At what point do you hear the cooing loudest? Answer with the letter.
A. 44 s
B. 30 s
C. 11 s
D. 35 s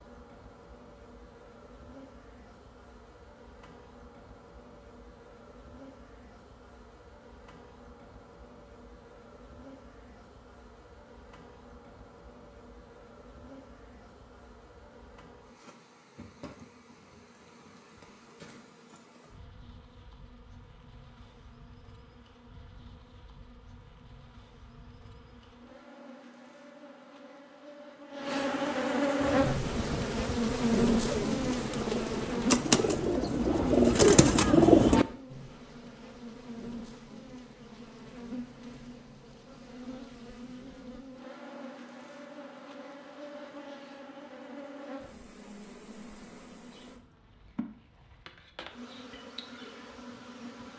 D.